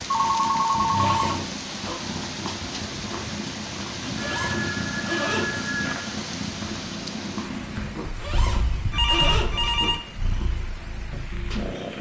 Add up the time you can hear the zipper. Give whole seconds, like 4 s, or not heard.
4 s.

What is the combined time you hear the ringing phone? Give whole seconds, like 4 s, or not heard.
5 s.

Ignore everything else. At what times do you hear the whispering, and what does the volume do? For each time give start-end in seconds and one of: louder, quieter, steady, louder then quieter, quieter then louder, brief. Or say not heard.
not heard.